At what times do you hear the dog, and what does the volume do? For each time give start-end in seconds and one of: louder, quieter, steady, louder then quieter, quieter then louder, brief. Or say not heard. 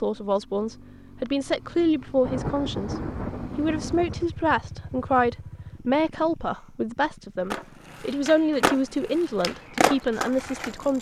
not heard.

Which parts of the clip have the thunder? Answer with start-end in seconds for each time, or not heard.
2.2-4.2.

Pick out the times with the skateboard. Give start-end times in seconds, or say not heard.
7.5-10.9.